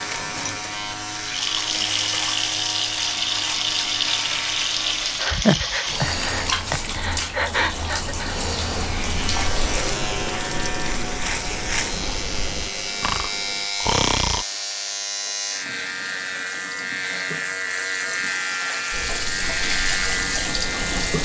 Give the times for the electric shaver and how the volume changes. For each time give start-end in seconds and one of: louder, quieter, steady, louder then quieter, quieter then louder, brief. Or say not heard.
0.0-5.4 steady
8.7-21.2 steady.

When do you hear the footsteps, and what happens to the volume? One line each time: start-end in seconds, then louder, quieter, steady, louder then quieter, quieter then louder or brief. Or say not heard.
not heard.